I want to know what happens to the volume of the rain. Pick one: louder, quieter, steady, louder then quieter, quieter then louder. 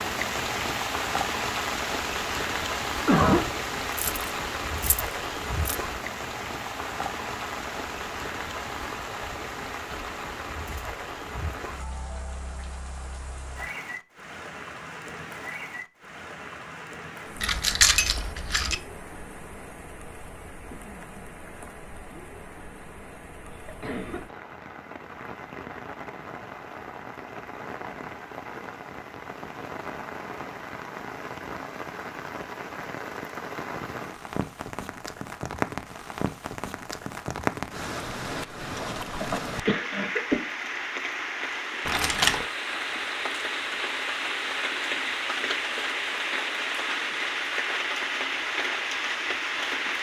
quieter then louder.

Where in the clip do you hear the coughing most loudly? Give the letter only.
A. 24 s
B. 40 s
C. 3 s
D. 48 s
C.